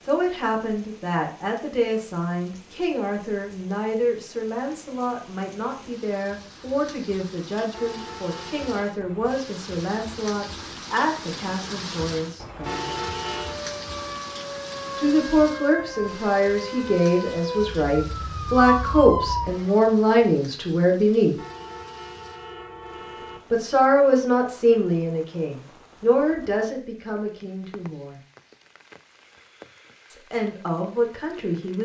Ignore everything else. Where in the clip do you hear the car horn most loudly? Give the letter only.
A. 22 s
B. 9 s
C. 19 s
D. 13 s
D.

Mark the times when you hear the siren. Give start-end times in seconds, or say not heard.
13.4-19.8.